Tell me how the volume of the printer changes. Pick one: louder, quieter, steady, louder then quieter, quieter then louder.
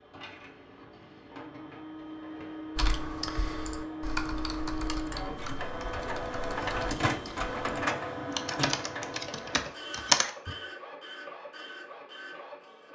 louder then quieter.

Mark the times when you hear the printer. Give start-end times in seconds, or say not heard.
0.0-12.9.